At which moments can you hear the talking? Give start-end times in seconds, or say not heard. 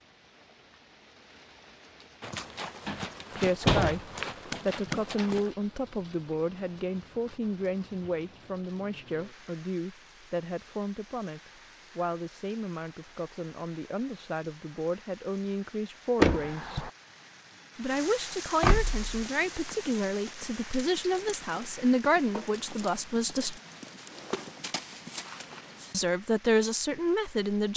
3.4-4.0, 4.7-16.9, 17.8-23.6, 25.9-27.7.